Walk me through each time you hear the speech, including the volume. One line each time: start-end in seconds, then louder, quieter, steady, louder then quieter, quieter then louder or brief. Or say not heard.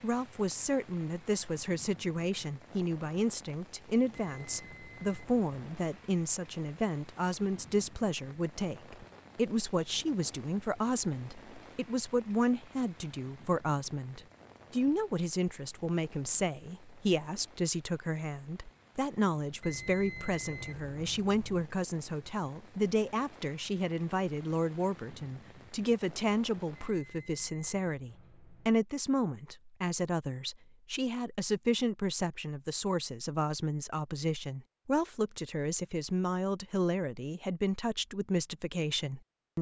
0.0-39.5 steady.